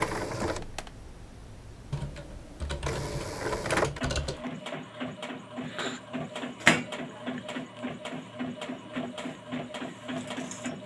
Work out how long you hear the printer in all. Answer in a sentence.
The printer can be heard for 11 seconds in total.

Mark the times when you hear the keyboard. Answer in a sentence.
You can hear the keyboard from 1.9 to 4.5 s.